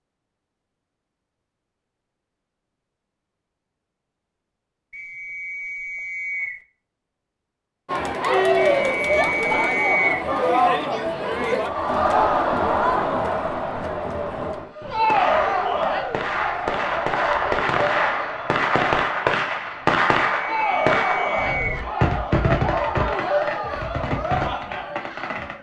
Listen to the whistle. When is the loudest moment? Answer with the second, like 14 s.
10 s.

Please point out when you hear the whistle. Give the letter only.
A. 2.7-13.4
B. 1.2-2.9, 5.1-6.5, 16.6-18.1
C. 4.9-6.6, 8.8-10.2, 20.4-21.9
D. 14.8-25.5
C.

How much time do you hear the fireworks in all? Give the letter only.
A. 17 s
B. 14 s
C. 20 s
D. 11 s
D.